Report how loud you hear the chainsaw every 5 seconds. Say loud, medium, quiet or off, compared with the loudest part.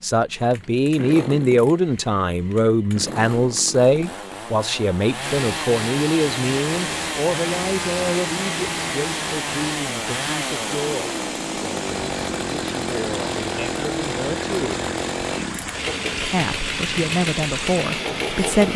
medium, loud, loud, loud.